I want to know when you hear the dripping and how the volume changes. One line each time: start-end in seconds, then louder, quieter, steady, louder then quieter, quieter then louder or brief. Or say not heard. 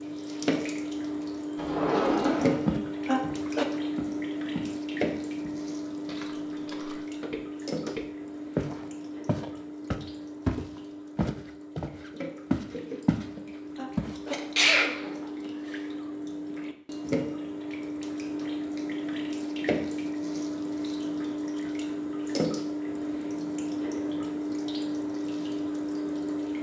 0.0-26.5 quieter then louder.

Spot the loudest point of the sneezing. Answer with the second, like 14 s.
15 s.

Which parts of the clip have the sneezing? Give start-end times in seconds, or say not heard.
2.6-3.6, 13.3-15.5.